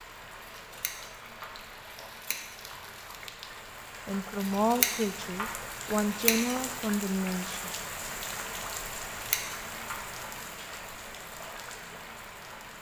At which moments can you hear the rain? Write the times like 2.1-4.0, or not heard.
0.0-12.7.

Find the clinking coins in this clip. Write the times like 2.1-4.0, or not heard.
not heard.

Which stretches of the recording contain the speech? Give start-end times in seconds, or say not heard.
4.0-7.7.